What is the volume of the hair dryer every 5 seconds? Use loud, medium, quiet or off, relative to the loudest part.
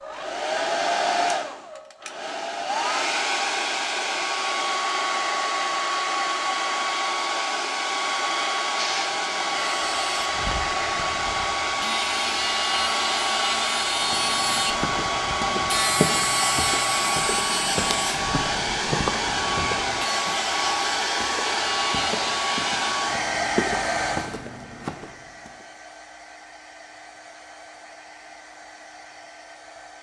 loud, loud, loud, loud, loud, quiet.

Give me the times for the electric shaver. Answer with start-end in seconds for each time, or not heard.
8.8-22.9.